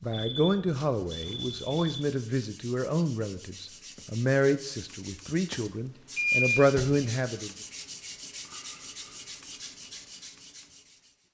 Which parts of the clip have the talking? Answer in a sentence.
You can hear the talking from 0.0 to 7.5 s.